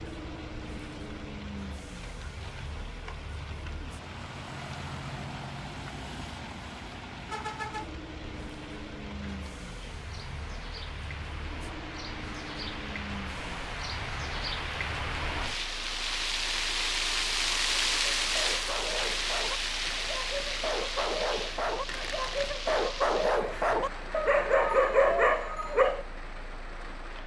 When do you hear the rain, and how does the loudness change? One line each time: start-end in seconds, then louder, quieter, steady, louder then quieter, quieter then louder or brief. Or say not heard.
0.0-27.2 louder then quieter.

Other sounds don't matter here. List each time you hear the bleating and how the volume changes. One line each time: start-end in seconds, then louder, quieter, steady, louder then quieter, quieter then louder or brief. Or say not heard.
not heard.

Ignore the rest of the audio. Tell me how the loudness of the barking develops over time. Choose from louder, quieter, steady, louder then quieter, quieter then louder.
louder.